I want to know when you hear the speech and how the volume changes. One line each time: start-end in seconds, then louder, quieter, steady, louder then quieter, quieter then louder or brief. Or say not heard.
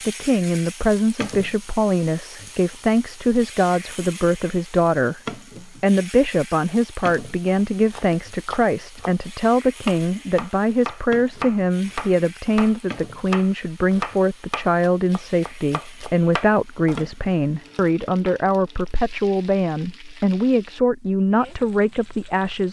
0.1-22.6 steady.